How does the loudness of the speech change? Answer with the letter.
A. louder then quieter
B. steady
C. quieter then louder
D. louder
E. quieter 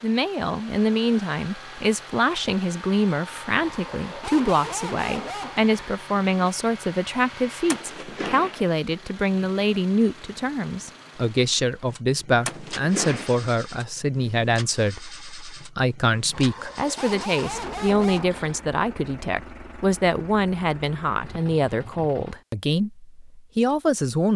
B.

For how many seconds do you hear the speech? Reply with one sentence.
You can hear the speech for 24 seconds altogether.